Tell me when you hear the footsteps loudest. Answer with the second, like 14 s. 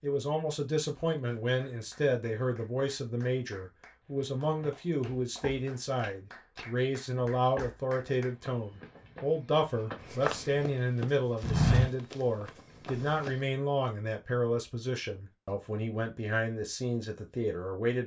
12 s.